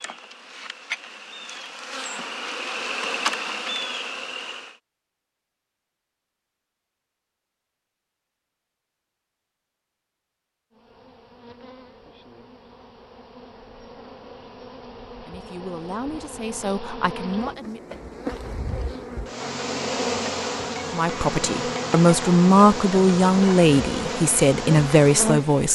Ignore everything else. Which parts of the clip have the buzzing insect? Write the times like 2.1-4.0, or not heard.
0.0-4.8, 10.7-25.7.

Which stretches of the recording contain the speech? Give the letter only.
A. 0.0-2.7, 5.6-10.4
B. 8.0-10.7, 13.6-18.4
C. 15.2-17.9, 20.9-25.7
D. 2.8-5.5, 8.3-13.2
C.